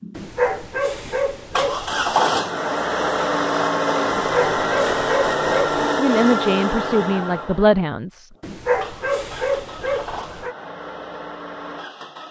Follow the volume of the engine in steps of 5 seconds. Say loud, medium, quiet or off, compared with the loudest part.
loud, loud, quiet.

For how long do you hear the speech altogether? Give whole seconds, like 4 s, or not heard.
2 s.